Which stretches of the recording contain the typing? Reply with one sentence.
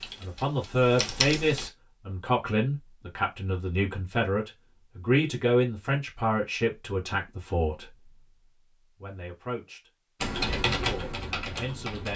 You can hear the typing from 0.0 to 1.7 s and from 10.2 to 12.1 s.